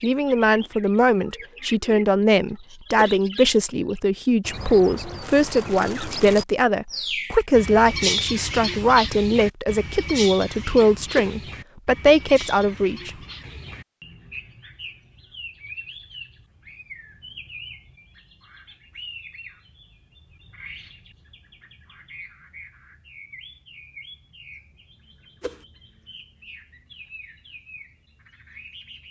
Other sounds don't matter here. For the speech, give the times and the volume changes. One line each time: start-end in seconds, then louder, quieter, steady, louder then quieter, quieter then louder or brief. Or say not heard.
0.0-13.1 steady.